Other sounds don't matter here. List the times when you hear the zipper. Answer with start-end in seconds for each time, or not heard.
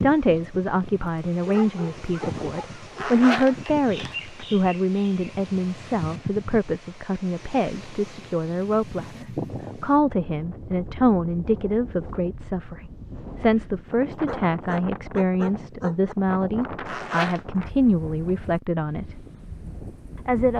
3.0-4.5, 16.9-17.4.